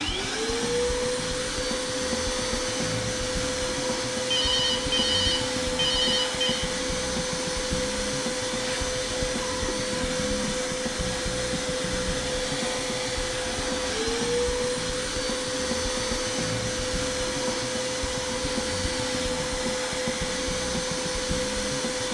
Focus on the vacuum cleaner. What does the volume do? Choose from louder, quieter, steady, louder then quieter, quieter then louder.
steady.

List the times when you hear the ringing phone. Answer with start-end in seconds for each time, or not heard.
4.3-6.7.